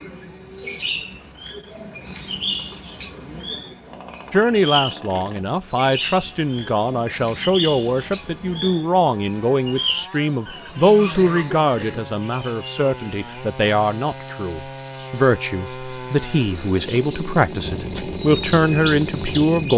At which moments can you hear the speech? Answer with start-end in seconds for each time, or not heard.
4.3-19.7.